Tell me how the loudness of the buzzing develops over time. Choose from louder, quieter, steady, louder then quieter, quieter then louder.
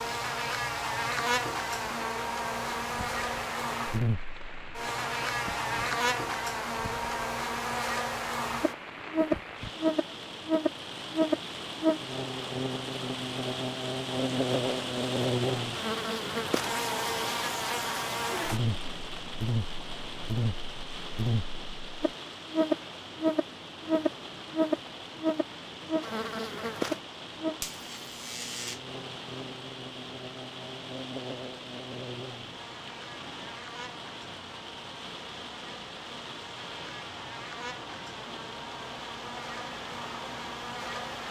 quieter.